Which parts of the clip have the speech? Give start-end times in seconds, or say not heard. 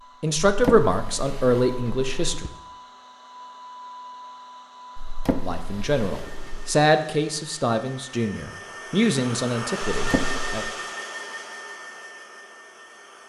0.2-2.5, 5.5-10.7.